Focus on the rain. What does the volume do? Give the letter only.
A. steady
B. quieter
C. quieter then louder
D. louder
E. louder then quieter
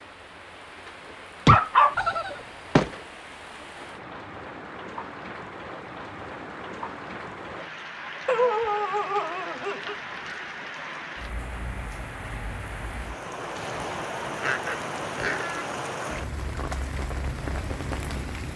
D.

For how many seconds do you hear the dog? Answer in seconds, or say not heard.
5 s.